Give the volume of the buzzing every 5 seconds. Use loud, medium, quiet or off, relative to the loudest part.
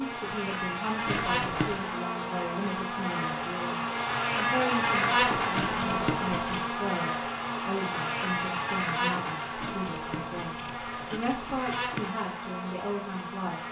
loud, loud, medium.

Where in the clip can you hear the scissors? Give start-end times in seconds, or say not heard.
1.1-1.9, 5.5-6.7, 9.6-12.1.